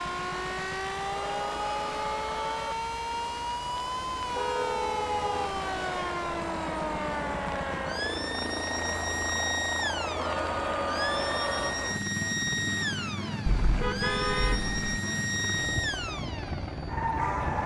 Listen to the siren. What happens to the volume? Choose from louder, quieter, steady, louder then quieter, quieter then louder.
steady.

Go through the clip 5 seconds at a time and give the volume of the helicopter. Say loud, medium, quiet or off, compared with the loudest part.
medium, loud, loud, loud.